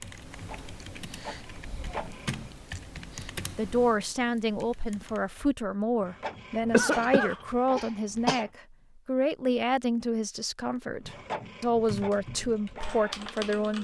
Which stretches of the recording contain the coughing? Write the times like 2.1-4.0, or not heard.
6.7-8.4.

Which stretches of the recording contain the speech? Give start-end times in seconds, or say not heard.
3.5-13.8.